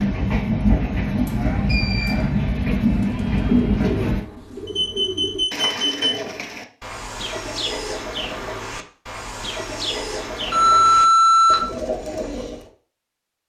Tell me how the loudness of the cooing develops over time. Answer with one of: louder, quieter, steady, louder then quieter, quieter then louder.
steady.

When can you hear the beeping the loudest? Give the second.
11 s.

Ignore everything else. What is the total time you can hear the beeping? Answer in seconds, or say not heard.
4 s.